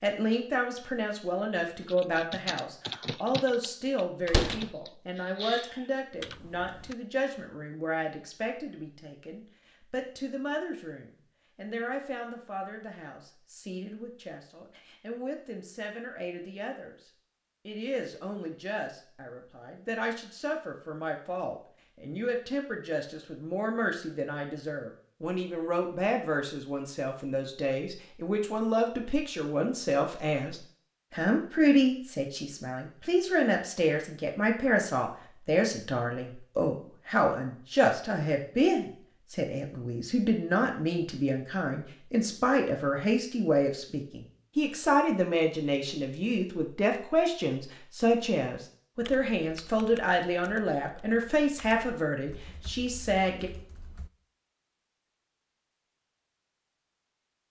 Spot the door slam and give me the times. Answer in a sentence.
The door slam can be heard from 4.2 to 4.7 s.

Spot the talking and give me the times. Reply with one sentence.
You can hear the talking from 0.0 to 53.5 s.